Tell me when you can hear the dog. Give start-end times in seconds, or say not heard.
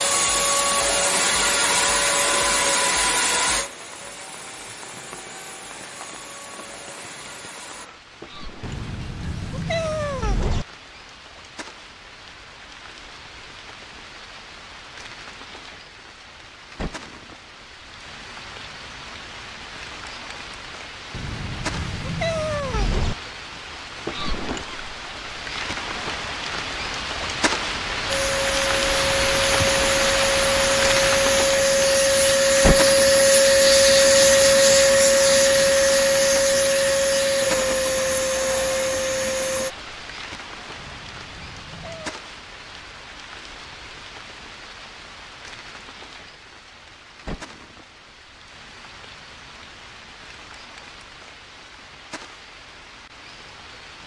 not heard.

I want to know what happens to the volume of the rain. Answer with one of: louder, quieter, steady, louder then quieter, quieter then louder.
louder then quieter.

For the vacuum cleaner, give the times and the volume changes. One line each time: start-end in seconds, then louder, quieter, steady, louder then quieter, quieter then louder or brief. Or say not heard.
0.0-7.9 quieter
28.1-39.7 louder then quieter.